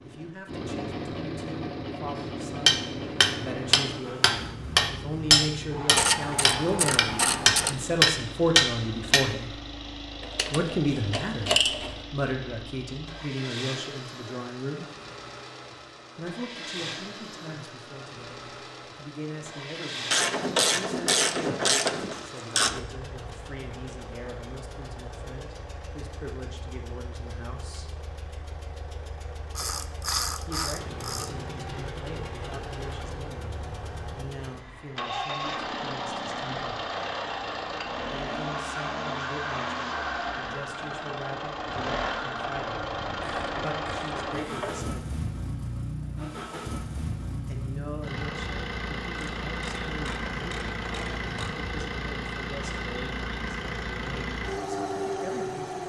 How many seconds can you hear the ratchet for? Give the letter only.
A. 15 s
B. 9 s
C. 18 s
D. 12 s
D.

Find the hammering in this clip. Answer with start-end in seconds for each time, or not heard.
2.6-9.2.